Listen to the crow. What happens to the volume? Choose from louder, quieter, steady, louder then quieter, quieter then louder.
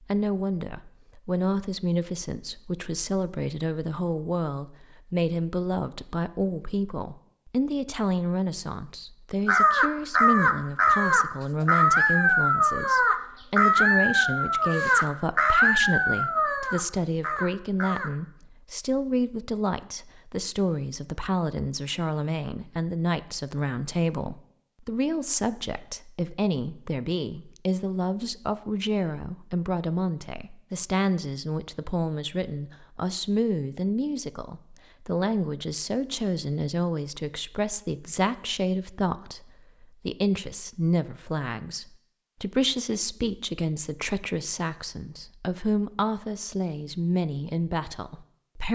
quieter.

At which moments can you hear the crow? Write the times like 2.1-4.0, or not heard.
9.4-18.1.